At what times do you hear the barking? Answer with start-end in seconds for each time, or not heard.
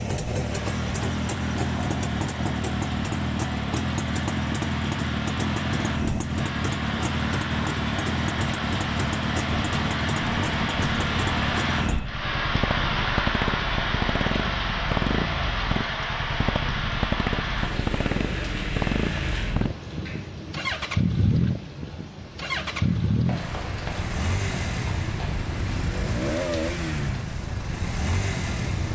not heard.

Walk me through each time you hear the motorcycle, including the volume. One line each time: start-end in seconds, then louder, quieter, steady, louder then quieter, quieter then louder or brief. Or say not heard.
0.0-28.9 steady.